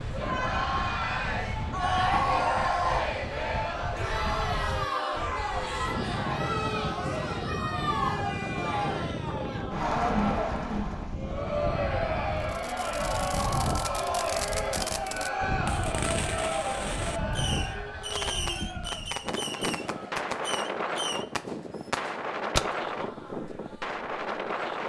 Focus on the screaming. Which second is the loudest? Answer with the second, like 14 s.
2 s.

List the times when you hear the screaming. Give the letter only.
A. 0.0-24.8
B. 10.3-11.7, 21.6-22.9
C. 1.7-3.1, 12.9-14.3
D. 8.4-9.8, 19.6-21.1
C.